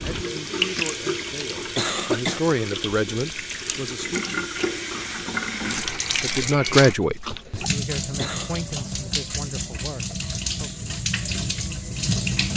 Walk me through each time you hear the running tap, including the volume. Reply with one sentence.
You can hear the running tap from 0.0 to 12.5 s, at a steady volume.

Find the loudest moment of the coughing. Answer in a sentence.
The volume of the coughing peaks at 2 seconds.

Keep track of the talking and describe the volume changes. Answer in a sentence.
The loudness of the talking goes up, then down.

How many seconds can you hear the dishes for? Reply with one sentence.
The dishes can't be heard in this clip.